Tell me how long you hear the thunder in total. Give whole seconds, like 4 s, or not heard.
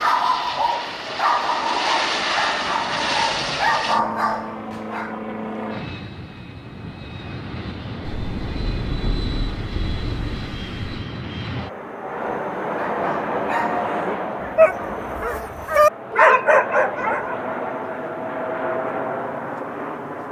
3 s.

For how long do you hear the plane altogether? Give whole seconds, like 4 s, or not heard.
20 s.